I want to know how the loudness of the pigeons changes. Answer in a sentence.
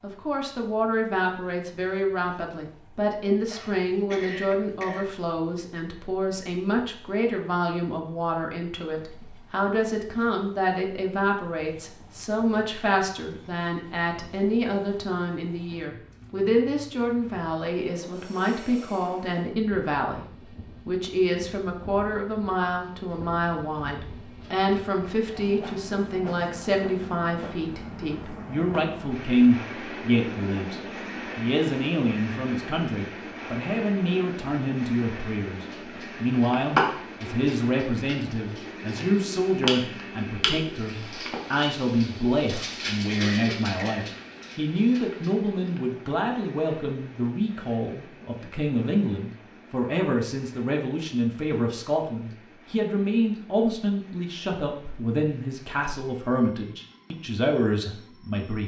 The volume of the pigeons goes down.